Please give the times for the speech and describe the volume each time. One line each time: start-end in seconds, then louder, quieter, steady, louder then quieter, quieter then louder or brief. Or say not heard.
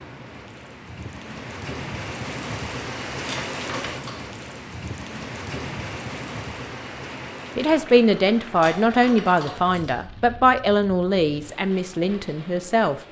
7.5-12.9 quieter.